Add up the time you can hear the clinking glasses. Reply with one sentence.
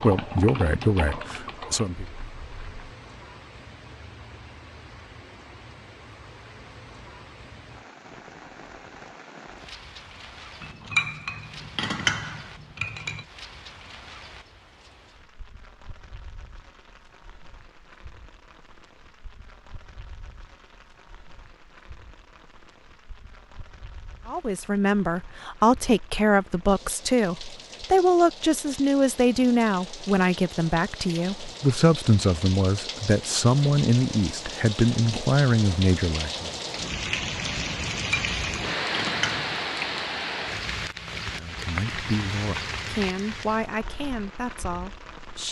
The clinking glasses can be heard for 4 seconds in total.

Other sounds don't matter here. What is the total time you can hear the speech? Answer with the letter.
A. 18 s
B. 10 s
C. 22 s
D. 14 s
A.